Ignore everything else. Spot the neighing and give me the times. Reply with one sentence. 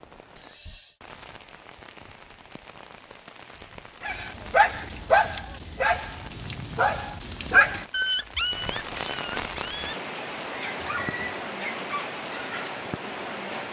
The neighing can be heard from 0.3 to 0.9 s, from 6.2 to 7.1 s and from 10.8 to 11.4 s.